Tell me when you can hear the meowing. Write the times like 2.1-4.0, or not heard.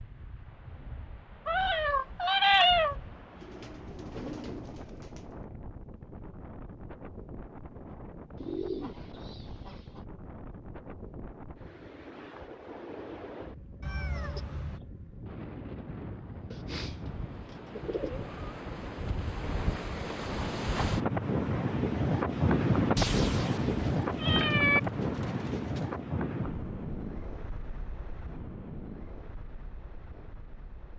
1.4-3.0, 13.8-14.8, 22.9-24.8.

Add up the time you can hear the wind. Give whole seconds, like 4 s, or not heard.
31 s.